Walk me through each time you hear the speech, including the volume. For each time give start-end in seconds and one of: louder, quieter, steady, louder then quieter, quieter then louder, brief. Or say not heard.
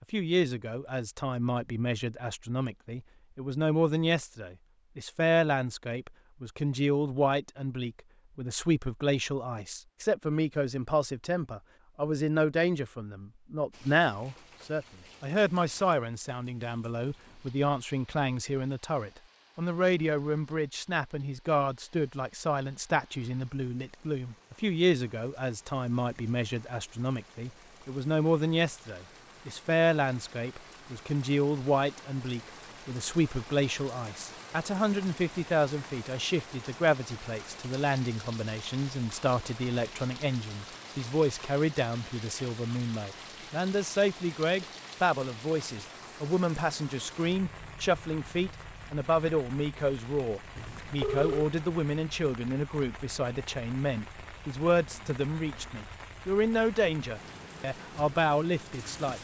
0.0-59.1 steady.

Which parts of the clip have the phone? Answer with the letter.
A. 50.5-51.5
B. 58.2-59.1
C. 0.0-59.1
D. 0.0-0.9
A.